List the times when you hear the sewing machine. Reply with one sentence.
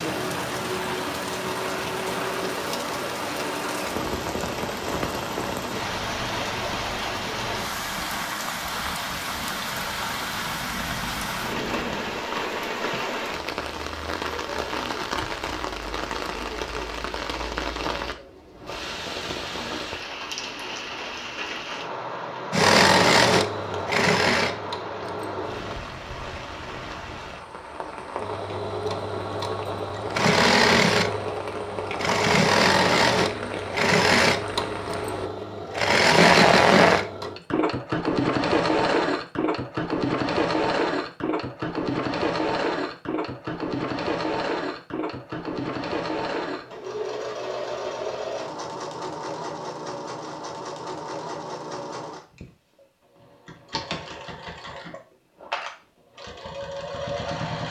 The sewing machine can be heard from 22.5 to 25.8 s and from 28.2 to 57.6 s.